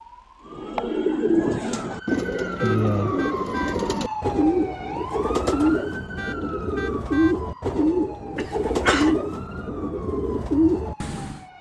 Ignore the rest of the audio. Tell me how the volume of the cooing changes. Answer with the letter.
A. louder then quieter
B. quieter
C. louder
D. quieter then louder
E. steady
E.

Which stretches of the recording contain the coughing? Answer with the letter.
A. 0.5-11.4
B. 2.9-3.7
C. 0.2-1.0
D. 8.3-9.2
D.